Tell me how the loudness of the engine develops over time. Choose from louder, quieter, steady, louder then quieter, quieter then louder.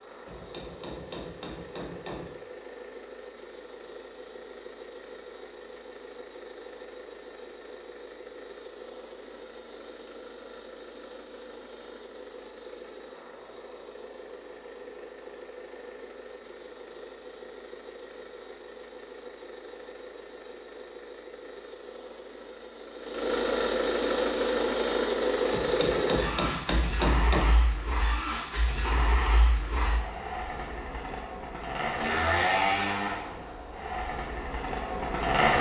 louder.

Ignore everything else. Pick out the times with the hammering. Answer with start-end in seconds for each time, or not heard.
0.2-2.3, 25.5-27.6.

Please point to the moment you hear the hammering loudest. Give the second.
27 s.